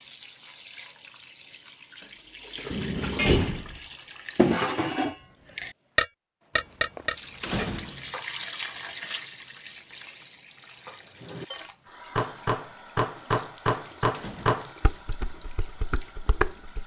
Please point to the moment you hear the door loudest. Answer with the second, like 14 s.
3 s.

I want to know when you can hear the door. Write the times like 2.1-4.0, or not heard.
2.7-3.8, 6.5-8.1, 14.1-14.8.